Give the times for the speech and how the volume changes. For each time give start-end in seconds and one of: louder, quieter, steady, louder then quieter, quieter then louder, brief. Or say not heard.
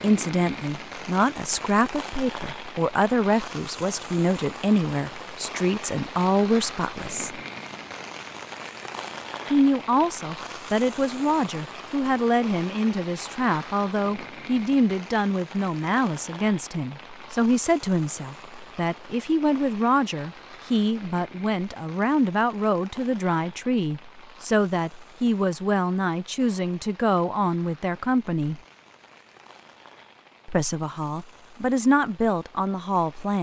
0.0-7.4 steady
9.5-28.6 steady
30.4-33.3 brief.